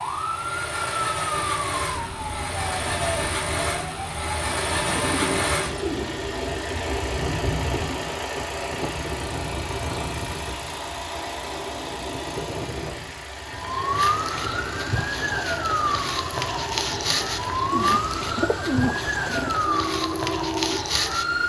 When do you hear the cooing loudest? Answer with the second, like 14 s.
19 s.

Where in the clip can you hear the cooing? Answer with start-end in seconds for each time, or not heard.
4.5-6.2, 17.7-19.6.